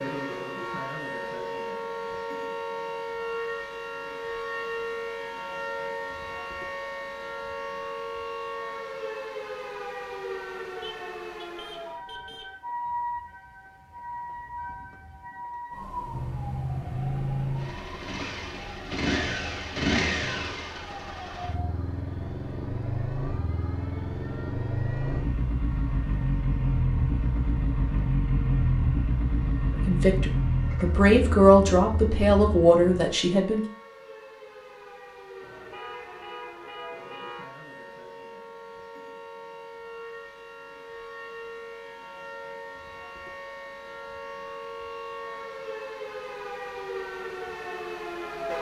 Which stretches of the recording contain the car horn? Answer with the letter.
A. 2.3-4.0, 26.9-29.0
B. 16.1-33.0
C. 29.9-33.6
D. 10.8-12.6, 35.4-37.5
D.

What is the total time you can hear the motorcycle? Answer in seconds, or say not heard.
17 s.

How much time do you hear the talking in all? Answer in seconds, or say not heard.
4 s.